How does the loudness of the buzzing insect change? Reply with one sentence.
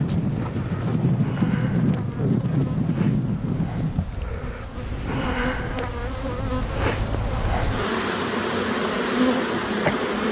The loudness of the buzzing insect goes up.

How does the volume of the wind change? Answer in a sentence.
The loudness of the wind goes down.